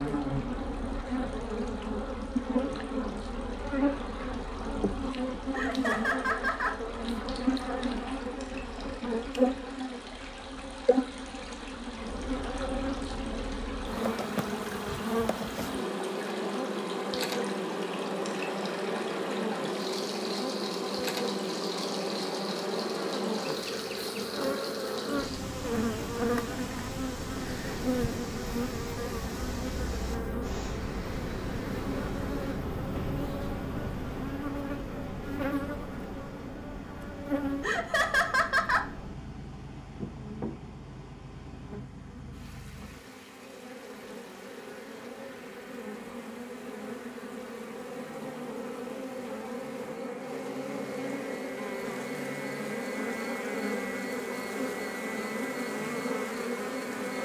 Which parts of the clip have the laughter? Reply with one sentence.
You can hear the laughter from 5.5 to 6.8 s and from 37.6 to 38.9 s.